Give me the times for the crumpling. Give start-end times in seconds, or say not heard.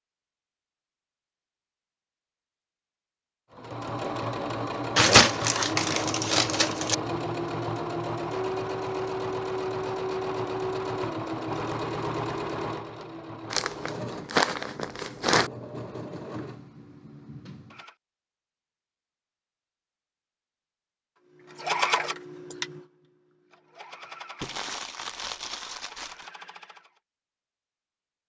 5.0-7.0, 13.5-15.5, 24.4-26.3.